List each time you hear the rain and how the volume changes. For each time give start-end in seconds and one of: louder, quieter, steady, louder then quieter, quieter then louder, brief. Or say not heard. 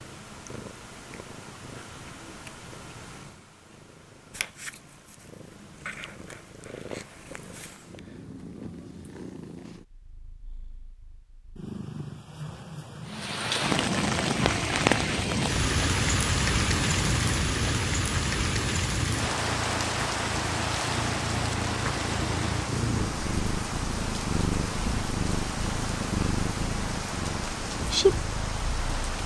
13.1-29.2 quieter.